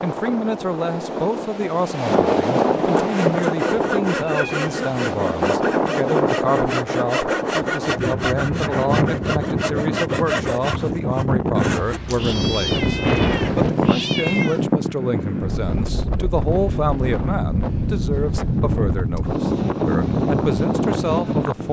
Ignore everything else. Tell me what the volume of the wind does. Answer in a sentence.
The volume of the wind stays about the same.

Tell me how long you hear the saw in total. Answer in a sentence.
The saw can be heard for 9 seconds in total.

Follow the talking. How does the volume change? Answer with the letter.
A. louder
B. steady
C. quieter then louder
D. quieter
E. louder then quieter
B.